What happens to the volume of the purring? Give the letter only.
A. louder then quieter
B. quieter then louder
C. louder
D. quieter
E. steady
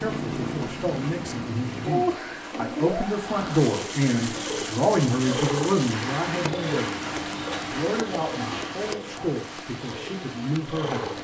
D.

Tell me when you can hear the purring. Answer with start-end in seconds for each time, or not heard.
0.0-11.1.